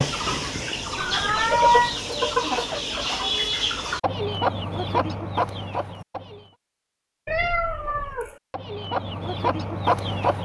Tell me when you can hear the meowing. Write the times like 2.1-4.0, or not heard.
0.9-1.9, 7.2-8.3.